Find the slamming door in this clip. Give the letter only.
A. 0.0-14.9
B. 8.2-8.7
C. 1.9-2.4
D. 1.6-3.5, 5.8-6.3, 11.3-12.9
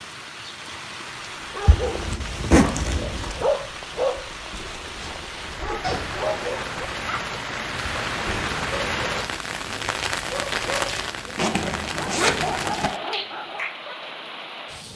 B.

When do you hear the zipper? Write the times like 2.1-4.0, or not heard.
1.6-3.5, 5.8-6.3, 11.3-12.9.